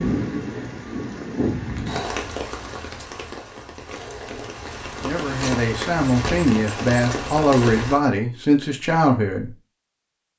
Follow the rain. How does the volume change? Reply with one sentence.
The loudness of the rain goes down, then up.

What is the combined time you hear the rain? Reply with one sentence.
You can hear the rain for 8 seconds altogether.